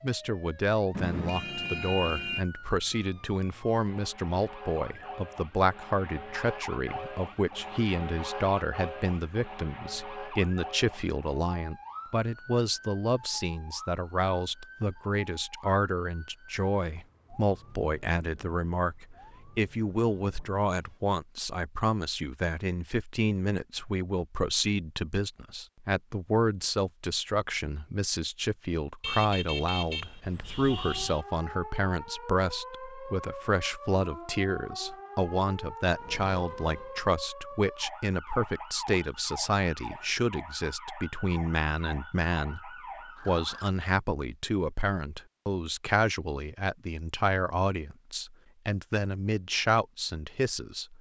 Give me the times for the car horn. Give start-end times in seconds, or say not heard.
0.9-2.5, 29.0-31.2, 36.0-37.0.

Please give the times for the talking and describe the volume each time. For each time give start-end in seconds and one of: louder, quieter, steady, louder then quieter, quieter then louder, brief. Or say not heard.
0.0-50.9 steady.